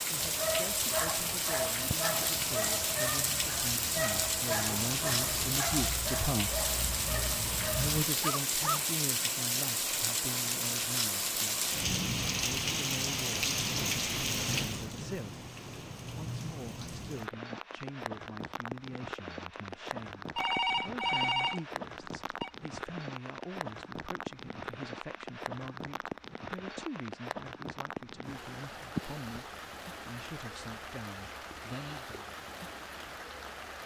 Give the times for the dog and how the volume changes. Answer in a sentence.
The dog can be heard from 0.1 to 8.8 s, at a steady volume.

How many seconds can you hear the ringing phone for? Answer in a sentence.
The ringing phone can be heard for 2 seconds in total.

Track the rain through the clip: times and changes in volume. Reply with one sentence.
You can hear the rain from 0.0 to 33.8 s, getting quieter.